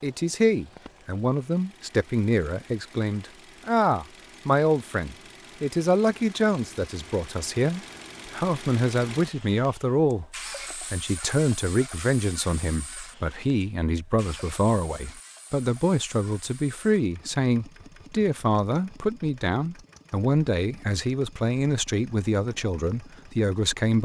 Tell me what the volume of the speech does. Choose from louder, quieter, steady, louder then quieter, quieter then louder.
steady.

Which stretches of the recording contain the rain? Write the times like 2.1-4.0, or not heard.
not heard.